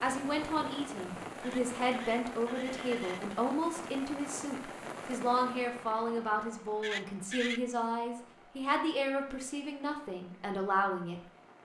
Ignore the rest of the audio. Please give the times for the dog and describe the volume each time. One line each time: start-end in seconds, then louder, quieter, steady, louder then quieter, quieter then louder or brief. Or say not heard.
not heard.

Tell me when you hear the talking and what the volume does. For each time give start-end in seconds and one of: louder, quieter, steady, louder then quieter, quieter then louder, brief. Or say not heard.
0.0-11.6 steady.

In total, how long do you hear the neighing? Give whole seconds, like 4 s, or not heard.
3 s.